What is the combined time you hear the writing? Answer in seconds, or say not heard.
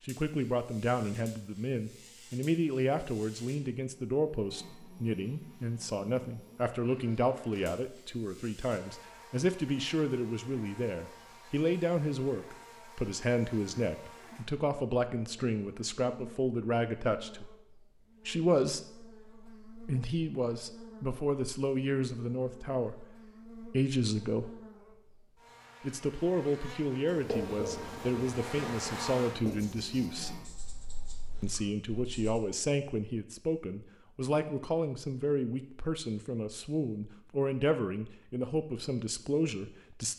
5 s.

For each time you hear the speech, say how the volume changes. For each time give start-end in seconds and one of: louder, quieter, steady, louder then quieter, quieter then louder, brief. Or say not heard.
0.1-17.5 steady
18.2-24.5 louder
25.8-30.4 steady
31.4-40.1 steady.